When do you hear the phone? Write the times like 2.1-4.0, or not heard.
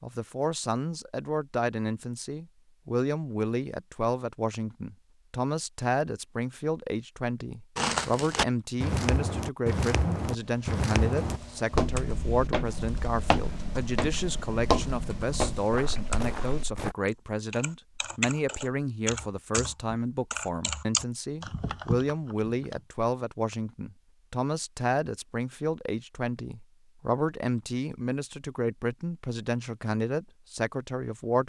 not heard.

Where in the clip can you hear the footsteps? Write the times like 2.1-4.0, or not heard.
7.8-16.9.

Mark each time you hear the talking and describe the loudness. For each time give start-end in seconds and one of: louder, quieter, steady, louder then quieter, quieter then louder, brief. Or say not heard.
0.0-31.4 steady.